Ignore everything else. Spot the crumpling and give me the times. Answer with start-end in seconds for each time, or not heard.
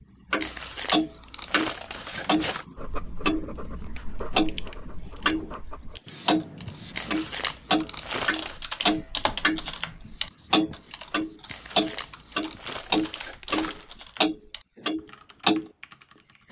0.3-2.6, 6.9-8.6, 11.4-13.9.